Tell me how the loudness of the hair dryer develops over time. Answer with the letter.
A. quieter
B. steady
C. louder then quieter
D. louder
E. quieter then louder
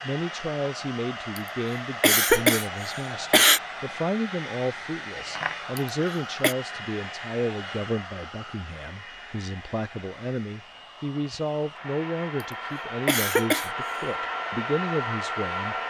E.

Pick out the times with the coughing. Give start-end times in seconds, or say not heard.
1.4-3.6, 5.8-6.5, 12.7-14.1.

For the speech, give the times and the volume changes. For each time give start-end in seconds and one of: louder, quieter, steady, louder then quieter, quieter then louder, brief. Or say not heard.
0.0-15.8 steady.